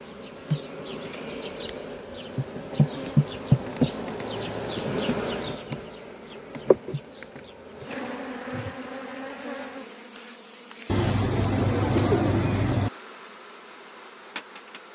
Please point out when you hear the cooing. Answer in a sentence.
You can hear the cooing from 10.8 to 12.9 s.